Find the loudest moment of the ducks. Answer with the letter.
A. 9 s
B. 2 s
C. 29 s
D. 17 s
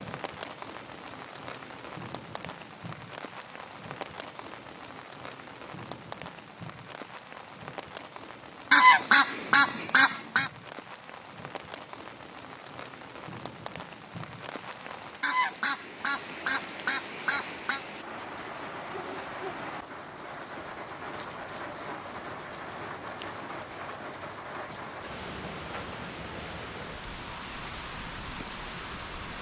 A.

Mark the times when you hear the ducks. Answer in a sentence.
You can hear the ducks from 8.7 to 10.5 s and from 15.2 to 17.8 s.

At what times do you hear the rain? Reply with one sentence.
The rain can be heard from 0.0 to 29.3 s.